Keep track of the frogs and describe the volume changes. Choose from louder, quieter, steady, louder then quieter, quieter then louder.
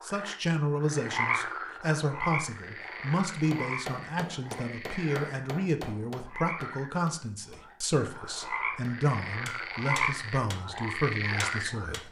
quieter then louder.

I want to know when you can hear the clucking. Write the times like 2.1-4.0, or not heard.
not heard.